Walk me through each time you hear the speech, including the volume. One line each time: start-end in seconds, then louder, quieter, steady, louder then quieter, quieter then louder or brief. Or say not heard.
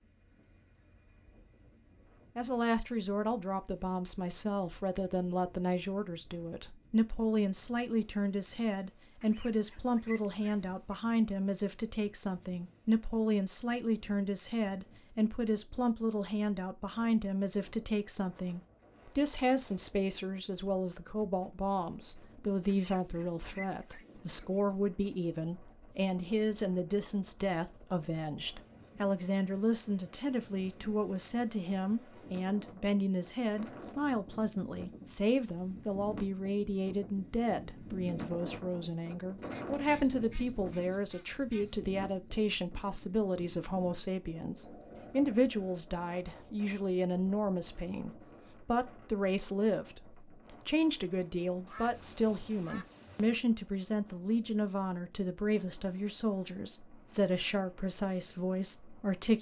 2.4-59.3 steady.